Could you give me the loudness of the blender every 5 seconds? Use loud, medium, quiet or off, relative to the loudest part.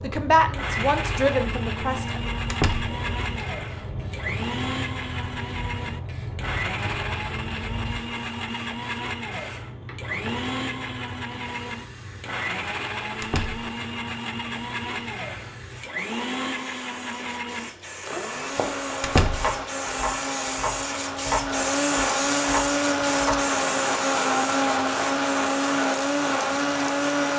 medium, medium, medium, medium, loud, loud.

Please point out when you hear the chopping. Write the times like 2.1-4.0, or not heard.
18.4-23.5.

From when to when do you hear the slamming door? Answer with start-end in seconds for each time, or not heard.
2.5-3.0, 13.2-13.7, 19.0-19.5.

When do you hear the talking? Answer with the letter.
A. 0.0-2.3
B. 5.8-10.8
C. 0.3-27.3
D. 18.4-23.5
A.